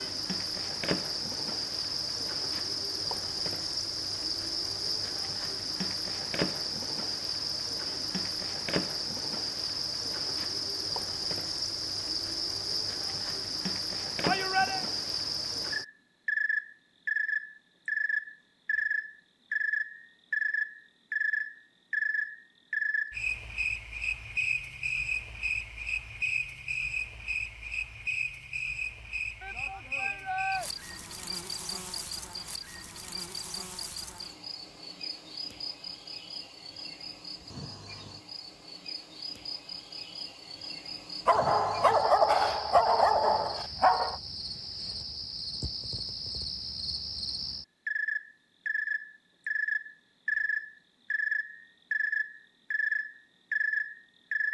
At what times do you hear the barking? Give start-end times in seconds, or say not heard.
41.2-44.1.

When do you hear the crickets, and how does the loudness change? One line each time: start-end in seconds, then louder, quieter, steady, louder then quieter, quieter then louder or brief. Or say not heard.
0.0-54.4 quieter then louder.